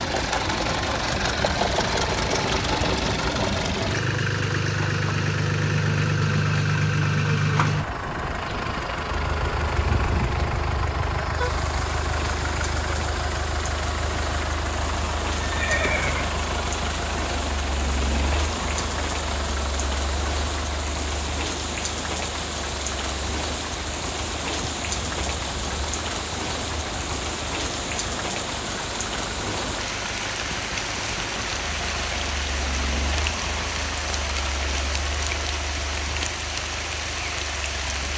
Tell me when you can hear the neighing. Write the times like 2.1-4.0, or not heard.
15.4-16.4.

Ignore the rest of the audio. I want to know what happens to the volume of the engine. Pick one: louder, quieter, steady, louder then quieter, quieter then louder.
quieter.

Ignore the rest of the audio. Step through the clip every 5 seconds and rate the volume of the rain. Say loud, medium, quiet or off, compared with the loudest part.
medium, medium, medium, loud, loud, loud, loud, loud.